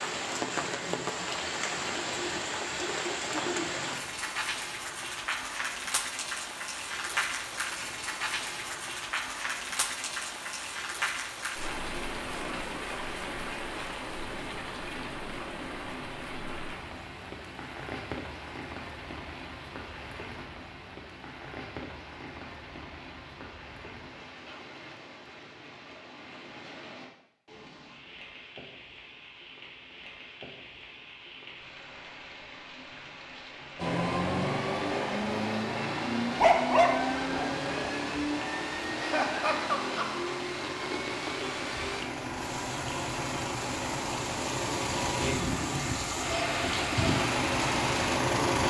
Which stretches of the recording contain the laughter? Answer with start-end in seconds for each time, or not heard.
39.0-40.3.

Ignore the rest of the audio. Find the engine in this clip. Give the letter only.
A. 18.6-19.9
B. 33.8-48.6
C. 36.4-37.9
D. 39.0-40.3
B.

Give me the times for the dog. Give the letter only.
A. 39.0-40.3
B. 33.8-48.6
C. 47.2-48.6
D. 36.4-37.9
D.